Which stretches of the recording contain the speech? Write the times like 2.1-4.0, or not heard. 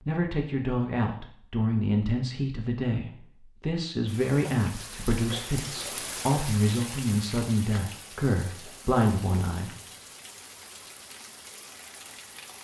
0.1-9.8.